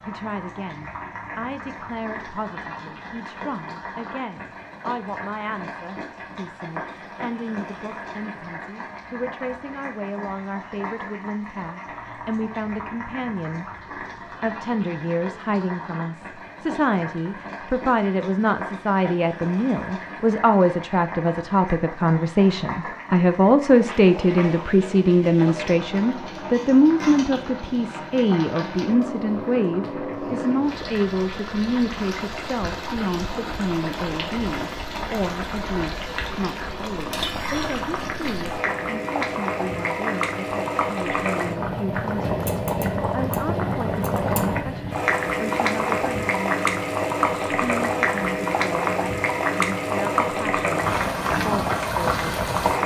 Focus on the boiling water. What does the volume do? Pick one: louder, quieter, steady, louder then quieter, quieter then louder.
louder.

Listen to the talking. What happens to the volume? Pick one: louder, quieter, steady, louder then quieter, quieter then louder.
louder then quieter.